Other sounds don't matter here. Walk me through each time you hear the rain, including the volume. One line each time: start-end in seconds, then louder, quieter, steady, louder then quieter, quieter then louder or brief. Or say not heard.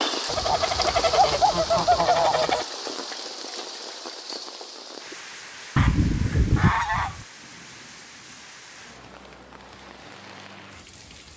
0.0-11.3 quieter.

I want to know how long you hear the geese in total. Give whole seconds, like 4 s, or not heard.
4 s.